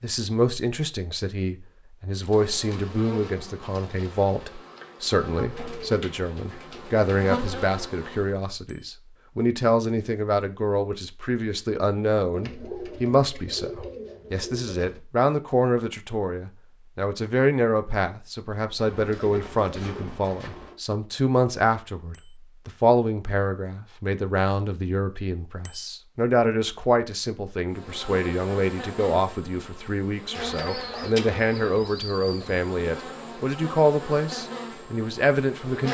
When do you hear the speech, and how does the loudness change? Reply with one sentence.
You can hear the speech from 0.0 to 35.9 s, at a steady volume.